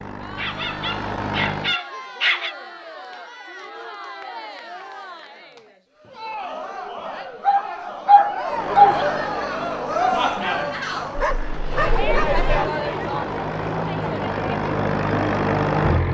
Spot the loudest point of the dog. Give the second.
9 s.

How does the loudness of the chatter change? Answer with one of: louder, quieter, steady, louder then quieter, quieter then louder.
louder.